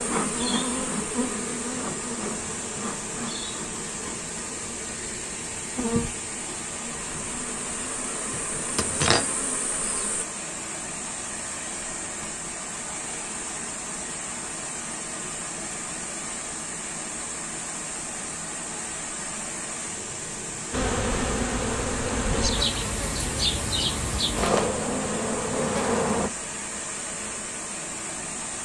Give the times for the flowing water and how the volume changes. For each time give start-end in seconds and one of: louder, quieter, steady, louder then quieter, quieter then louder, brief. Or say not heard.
0.0-28.6 steady.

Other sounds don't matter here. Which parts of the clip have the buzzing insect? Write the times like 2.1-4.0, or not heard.
0.0-10.2, 20.7-26.3.